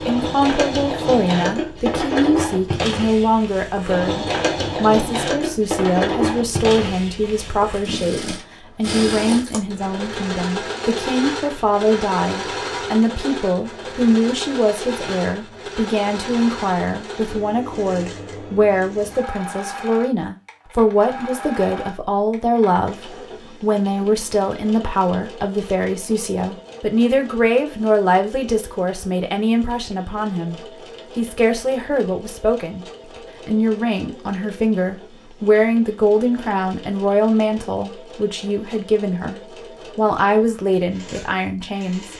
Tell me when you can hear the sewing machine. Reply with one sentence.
The sewing machine can be heard from 0.0 to 42.1 s.